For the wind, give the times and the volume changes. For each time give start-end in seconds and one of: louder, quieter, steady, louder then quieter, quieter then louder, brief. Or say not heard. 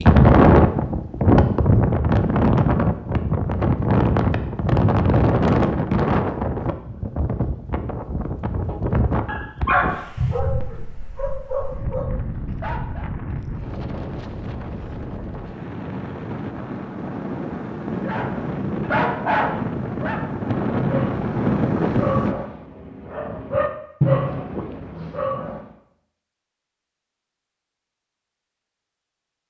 0.0-22.4 quieter then louder.